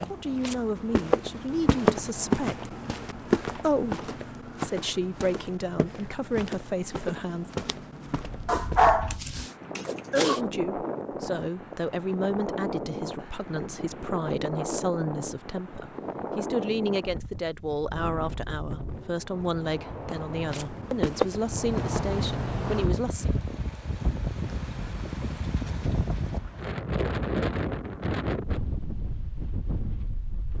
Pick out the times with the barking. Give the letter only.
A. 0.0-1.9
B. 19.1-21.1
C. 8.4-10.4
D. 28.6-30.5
C.